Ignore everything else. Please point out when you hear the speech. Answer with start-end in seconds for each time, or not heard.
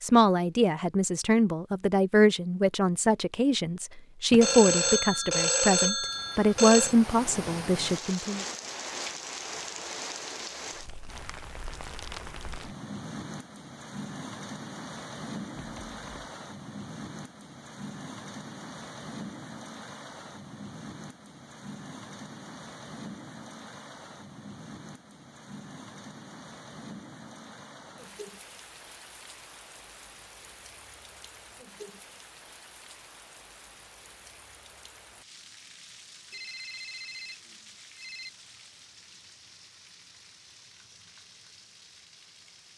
0.0-8.4.